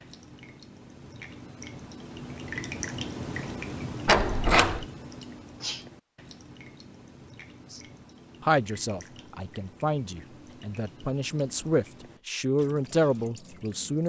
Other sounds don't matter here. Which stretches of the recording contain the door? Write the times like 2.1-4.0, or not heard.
4.0-4.8.